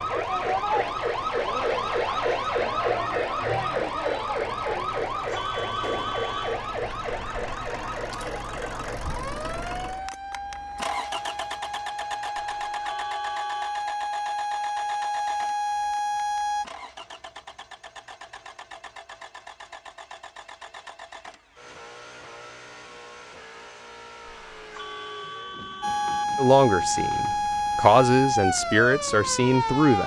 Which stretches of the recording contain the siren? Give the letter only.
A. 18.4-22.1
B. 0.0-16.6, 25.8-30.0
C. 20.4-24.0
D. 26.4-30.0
B.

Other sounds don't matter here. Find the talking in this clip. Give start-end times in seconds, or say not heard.
26.4-30.0.